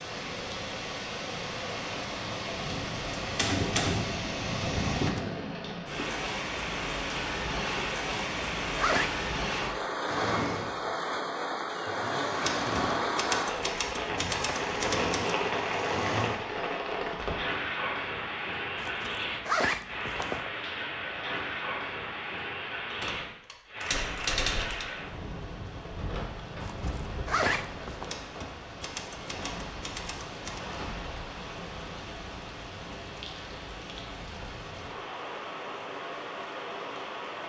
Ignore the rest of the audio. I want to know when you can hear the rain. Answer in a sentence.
The rain can be heard from 0.0 to 37.4 s.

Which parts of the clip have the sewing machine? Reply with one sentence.
You can hear the sewing machine from 10.1 to 16.6 s.